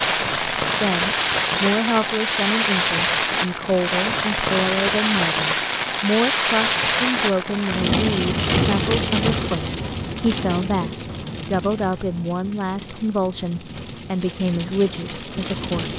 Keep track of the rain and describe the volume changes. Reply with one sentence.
The loudness of the rain goes down.